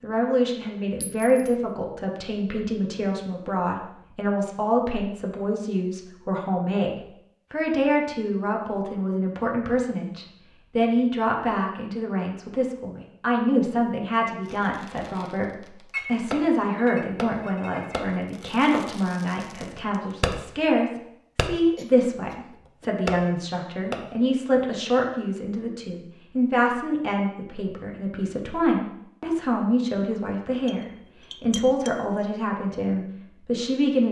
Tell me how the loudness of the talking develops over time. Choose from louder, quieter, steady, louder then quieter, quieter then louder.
steady.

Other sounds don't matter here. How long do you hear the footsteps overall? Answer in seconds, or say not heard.
not heard.